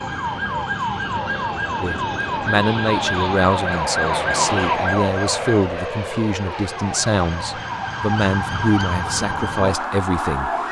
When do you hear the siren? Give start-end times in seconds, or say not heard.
0.0-10.6.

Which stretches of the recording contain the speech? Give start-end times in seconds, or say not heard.
1.8-10.5.